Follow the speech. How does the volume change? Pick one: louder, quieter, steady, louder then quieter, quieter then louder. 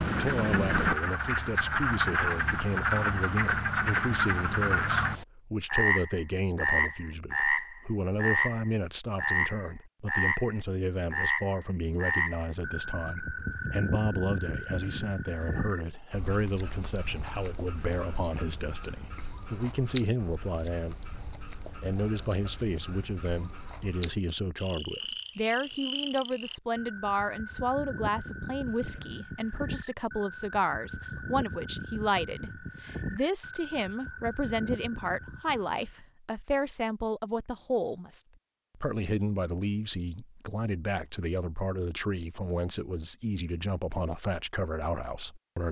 steady.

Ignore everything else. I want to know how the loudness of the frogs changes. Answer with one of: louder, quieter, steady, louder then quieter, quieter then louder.
quieter.